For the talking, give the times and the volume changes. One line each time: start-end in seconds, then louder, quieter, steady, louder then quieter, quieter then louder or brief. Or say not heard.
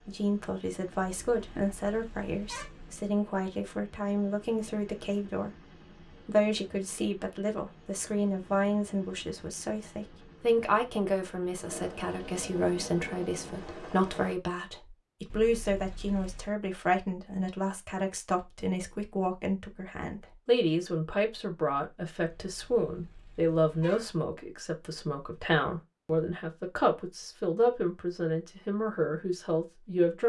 0.1-30.2 steady.